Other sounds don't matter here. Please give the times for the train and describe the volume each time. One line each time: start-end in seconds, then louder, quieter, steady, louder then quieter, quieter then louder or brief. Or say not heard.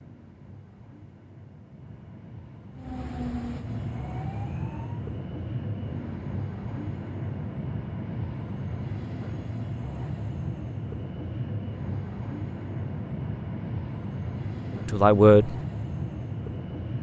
0.0-16.9 louder.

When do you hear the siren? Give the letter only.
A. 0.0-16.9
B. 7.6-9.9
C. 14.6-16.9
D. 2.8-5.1
D.